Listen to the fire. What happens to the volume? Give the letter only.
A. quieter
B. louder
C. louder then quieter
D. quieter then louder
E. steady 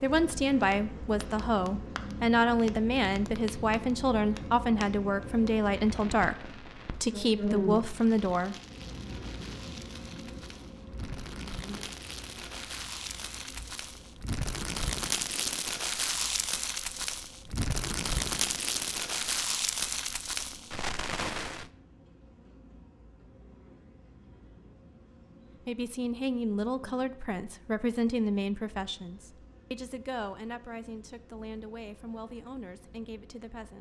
B.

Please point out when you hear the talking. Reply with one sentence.
You can hear the talking from 0.0 to 8.6 s and from 25.6 to 33.7 s.